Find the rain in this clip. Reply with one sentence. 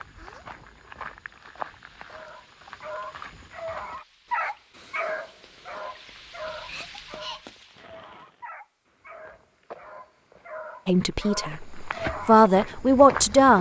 You can hear the rain from 0.0 to 8.4 s.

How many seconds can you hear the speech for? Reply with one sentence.
The speech can be heard for 3 seconds in total.